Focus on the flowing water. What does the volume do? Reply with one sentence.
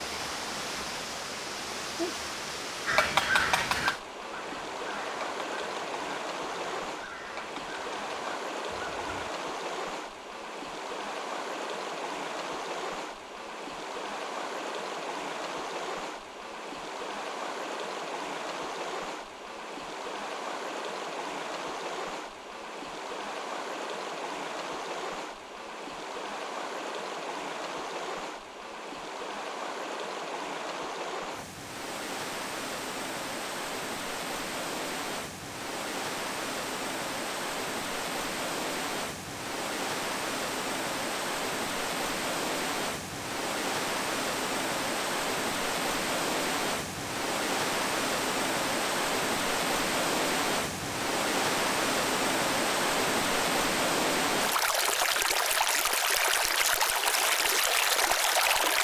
The loudness of the flowing water goes up.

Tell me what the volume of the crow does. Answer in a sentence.
The loudness of the crow goes down.